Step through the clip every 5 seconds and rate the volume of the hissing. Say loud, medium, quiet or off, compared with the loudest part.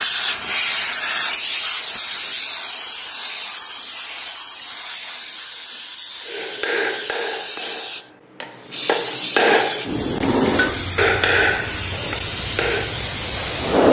loud, medium, loud.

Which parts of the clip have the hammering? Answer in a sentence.
The hammering can be heard from 6.2 to 13.1 s.